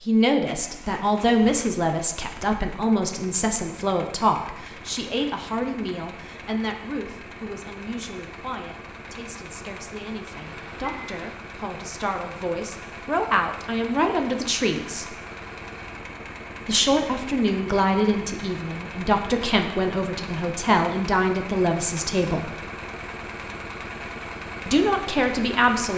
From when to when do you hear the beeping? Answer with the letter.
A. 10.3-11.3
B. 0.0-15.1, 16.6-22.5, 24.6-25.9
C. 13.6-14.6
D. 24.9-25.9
A.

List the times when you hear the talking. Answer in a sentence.
You can hear the talking from 0.0 to 15.1 s, from 16.6 to 22.5 s and from 24.6 to 25.9 s.